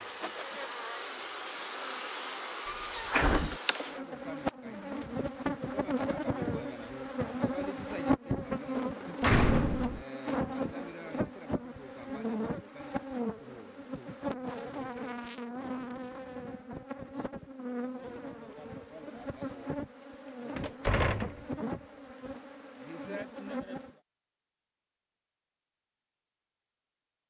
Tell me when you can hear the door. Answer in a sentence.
The door can be heard from 2.6 to 3.6 s, from 9.2 to 10.1 s and from 20.6 to 21.4 s.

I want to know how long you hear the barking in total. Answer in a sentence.
The barking can't be heard in this clip.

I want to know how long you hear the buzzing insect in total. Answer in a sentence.
You can hear the buzzing insect for 24 seconds altogether.